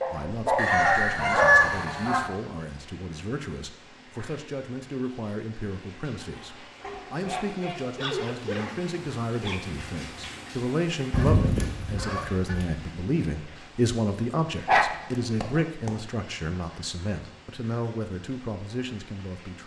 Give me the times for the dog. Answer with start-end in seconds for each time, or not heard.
0.0-1.7, 6.8-9.6, 14.7-15.7.